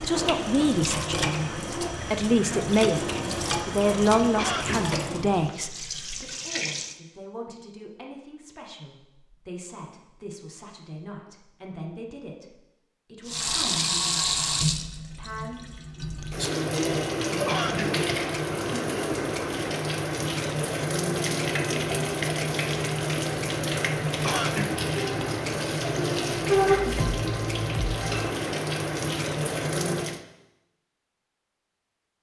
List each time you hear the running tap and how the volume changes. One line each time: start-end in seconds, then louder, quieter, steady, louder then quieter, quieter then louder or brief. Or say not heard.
0.0-7.0 quieter
13.2-30.2 steady.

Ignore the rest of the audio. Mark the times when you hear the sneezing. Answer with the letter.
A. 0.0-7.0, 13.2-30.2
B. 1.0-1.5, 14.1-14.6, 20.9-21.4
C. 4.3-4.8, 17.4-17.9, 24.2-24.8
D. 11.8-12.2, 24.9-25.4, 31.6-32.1
C.